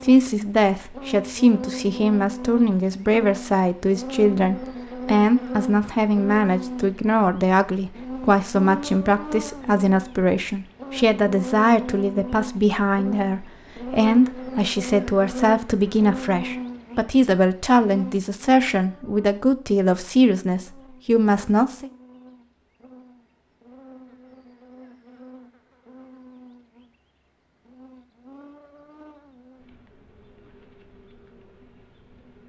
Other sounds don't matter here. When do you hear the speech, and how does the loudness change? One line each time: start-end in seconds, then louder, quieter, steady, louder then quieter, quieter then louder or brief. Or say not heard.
0.0-21.9 steady.